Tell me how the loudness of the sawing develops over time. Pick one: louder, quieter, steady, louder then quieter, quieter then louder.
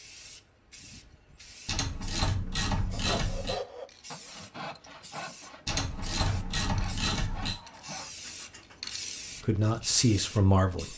quieter.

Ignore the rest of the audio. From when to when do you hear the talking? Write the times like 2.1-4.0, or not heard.
9.4-10.9.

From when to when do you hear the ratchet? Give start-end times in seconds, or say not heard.
1.6-3.5, 5.7-7.5.